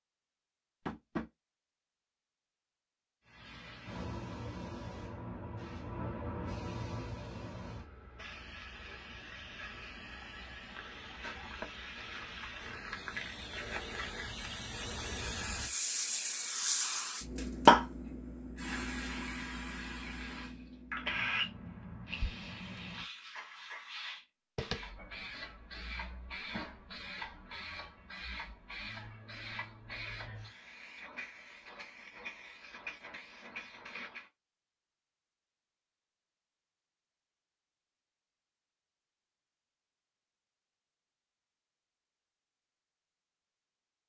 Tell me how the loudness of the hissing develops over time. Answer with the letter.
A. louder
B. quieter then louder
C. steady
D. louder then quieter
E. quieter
D.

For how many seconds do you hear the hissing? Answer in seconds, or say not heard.
31 s.